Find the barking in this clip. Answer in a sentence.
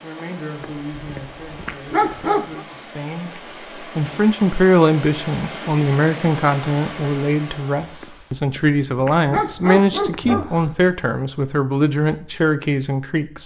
You can hear the barking from 0.6 to 2.6 s and from 8.0 to 10.9 s.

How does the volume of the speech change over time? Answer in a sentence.
The loudness of the speech goes up.